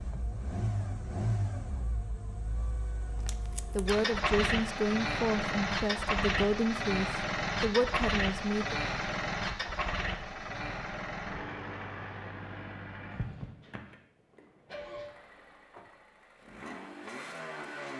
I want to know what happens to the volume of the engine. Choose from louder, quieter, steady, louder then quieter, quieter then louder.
louder then quieter.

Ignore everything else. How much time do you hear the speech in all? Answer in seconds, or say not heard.
5 s.